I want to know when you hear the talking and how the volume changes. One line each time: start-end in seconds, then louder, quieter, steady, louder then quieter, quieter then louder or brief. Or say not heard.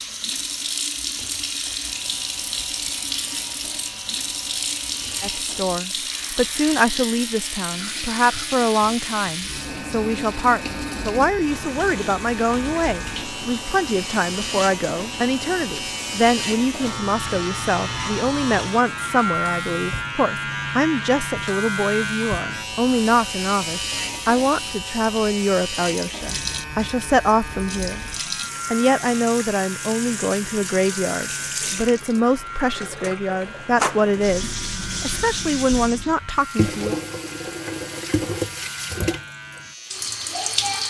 5.2-28.0 steady
28.7-37.0 steady.